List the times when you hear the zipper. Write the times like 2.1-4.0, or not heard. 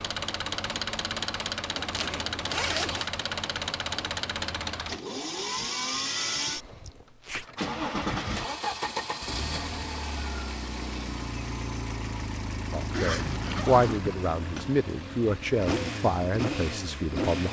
1.8-3.1, 6.5-7.5, 12.8-14.7.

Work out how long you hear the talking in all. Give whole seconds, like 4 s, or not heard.
5 s.